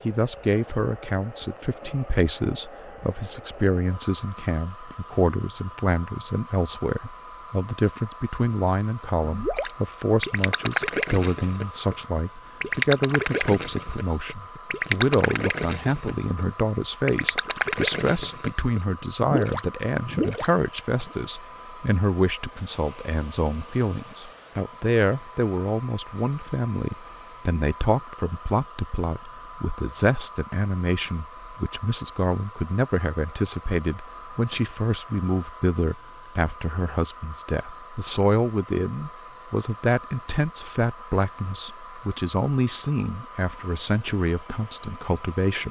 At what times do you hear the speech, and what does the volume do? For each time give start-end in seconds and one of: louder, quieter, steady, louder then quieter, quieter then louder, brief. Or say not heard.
0.1-45.6 steady.